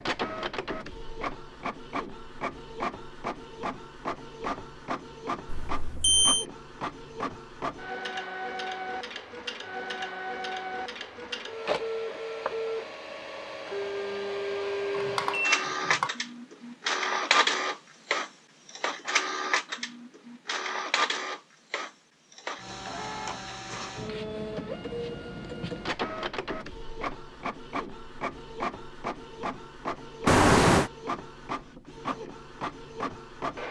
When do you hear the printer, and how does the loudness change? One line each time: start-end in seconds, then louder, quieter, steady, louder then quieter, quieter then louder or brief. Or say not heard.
0.0-33.6 louder then quieter.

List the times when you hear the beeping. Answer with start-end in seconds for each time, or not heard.
5.5-6.5, 14.9-16.1, 30.2-30.9.